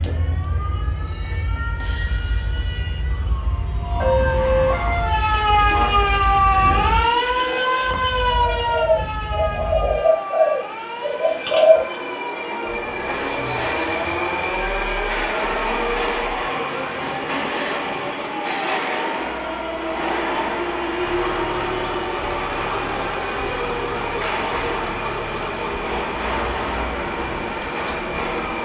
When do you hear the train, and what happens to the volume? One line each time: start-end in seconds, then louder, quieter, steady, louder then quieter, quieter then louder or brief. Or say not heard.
0.0-28.6 louder.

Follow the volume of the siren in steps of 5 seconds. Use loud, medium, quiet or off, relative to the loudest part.
medium, loud, quiet, quiet, quiet, quiet.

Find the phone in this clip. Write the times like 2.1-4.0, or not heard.
not heard.